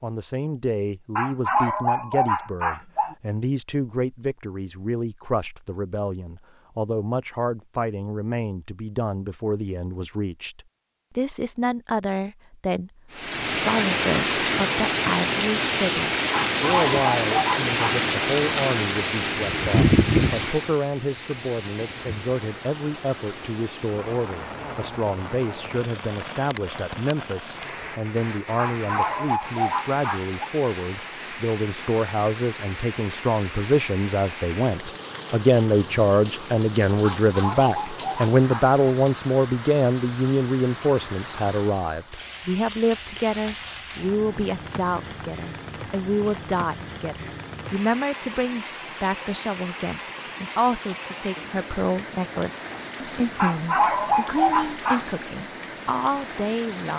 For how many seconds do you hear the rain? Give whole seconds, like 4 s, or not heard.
44 s.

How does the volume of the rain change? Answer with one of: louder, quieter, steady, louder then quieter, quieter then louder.
quieter.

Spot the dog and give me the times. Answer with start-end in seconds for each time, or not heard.
1.1-3.1, 16.3-18.0, 28.6-30.5, 37.0-38.7, 53.4-55.0.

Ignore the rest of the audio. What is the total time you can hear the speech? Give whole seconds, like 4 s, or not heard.
57 s.